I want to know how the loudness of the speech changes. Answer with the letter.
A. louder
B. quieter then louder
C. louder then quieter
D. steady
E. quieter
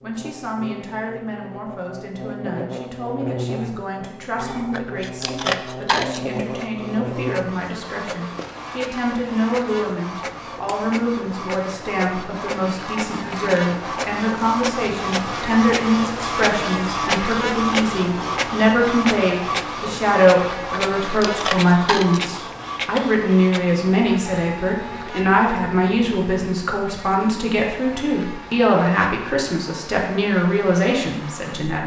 A.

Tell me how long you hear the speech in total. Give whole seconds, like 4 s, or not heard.
32 s.